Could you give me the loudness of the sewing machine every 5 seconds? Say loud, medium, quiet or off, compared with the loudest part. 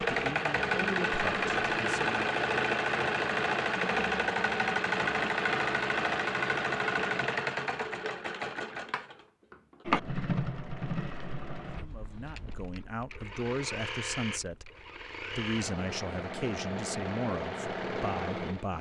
loud, loud, medium, medium.